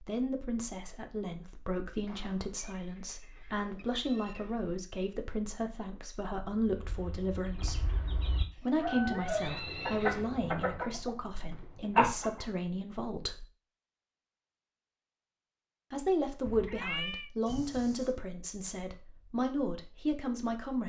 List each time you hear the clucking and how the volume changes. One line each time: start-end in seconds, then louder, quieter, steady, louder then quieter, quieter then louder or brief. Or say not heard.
6.7-12.4 louder.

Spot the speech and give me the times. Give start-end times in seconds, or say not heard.
0.0-7.9, 8.6-13.4, 15.9-20.8.